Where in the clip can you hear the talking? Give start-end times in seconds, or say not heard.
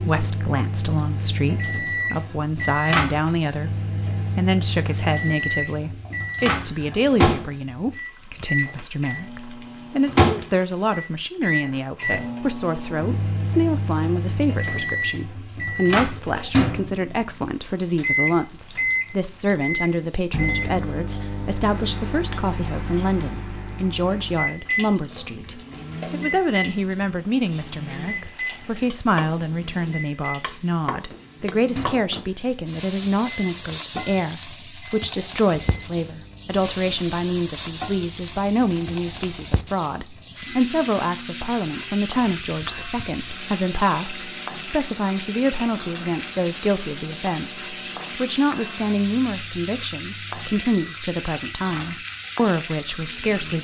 0.0-3.7, 4.3-53.6.